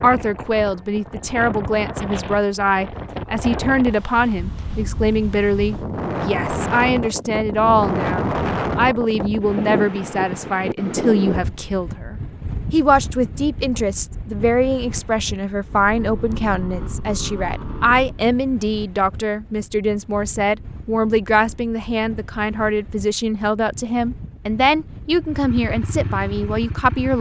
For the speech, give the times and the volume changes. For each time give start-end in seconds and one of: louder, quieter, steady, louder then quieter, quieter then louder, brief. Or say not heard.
0.0-27.1 steady.